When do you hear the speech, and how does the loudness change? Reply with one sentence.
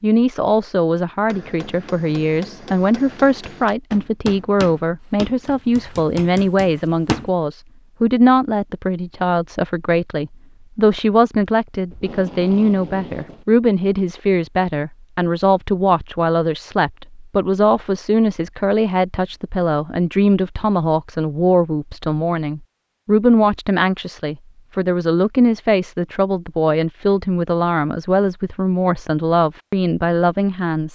The speech can be heard from 0.0 to 30.9 s, at a steady volume.